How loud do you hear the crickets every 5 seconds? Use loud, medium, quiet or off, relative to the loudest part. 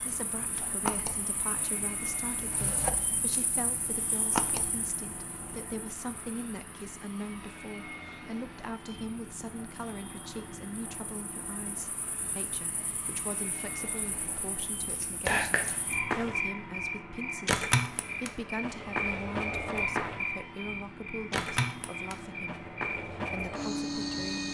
medium, quiet, quiet, loud, loud.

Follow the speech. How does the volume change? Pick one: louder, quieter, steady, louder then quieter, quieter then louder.
steady.